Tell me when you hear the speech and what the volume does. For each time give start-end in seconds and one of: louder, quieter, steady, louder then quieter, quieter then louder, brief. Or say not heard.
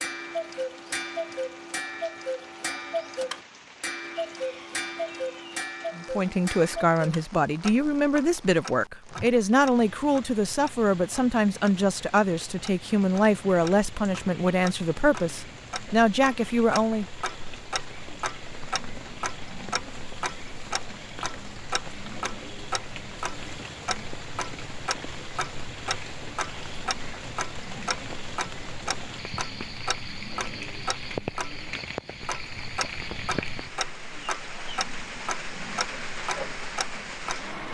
6.0-17.1 steady.